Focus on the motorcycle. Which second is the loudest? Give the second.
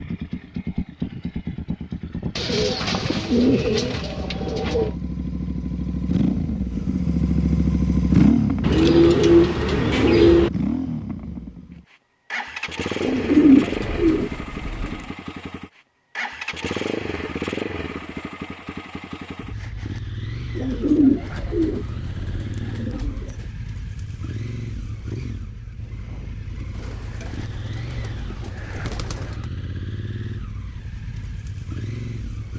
8 s.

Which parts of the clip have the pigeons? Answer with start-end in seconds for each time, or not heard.
2.4-5.0, 8.6-10.5, 13.0-15.1, 20.6-23.4, 26.8-29.4.